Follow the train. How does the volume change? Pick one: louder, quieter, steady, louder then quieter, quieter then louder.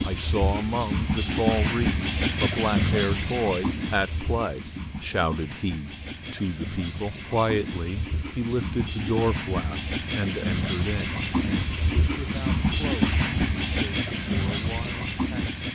quieter then louder.